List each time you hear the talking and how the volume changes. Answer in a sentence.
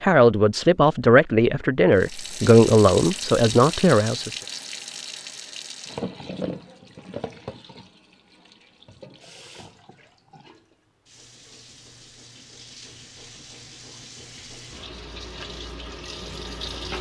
The talking can be heard from 0.0 to 4.3 s, at a steady volume.